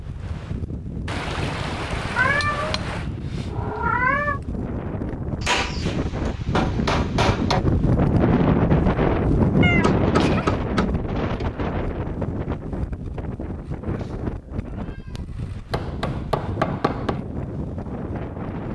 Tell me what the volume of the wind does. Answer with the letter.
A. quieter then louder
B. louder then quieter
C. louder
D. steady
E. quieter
B.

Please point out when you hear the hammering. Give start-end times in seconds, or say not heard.
1.1-3.1, 5.4-7.6, 9.8-11.5, 15.7-17.2.